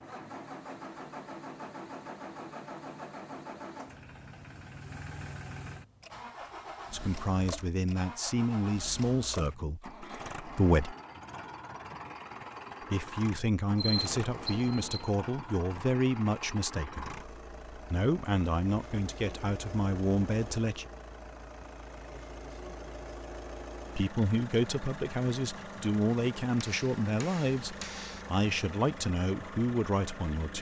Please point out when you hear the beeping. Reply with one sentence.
You can hear the beeping from 13.8 to 15.2 s.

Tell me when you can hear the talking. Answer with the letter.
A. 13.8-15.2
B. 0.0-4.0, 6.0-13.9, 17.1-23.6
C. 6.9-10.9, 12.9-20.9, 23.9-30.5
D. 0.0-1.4
C.